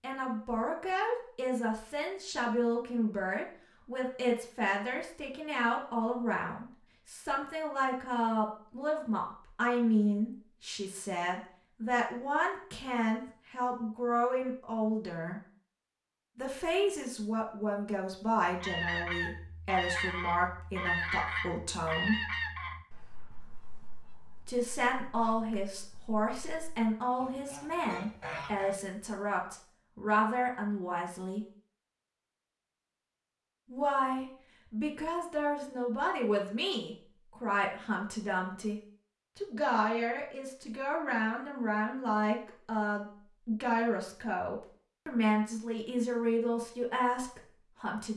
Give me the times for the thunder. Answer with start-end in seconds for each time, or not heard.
not heard.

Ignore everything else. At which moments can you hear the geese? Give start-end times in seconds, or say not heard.
18.5-28.8.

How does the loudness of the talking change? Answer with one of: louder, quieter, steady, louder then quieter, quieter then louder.
steady.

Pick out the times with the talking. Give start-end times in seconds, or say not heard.
0.0-15.4, 16.4-22.2, 24.4-31.4, 33.6-48.1.